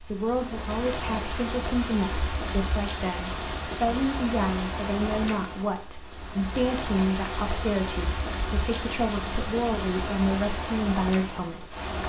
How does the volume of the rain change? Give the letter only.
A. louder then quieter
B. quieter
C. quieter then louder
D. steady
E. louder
D.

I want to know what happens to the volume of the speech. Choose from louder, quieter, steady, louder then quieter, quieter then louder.
steady.